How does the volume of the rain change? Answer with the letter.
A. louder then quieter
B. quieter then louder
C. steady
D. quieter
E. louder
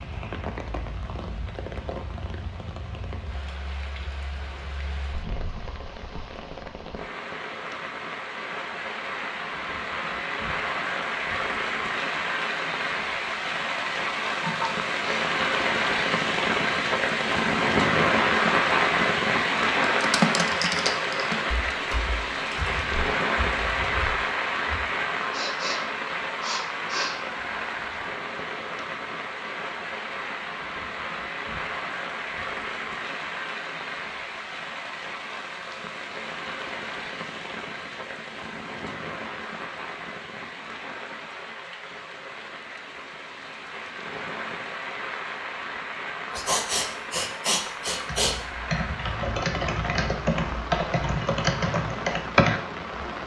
A.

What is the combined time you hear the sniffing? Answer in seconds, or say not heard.
5 s.